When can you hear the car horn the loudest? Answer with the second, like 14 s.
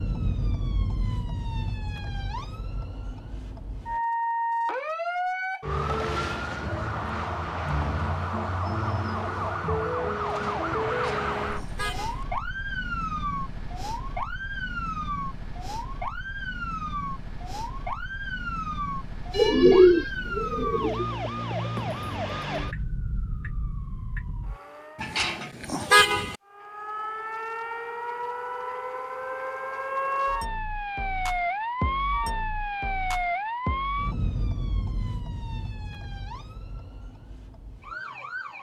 26 s.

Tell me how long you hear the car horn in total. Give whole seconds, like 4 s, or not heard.
3 s.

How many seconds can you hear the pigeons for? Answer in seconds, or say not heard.
2 s.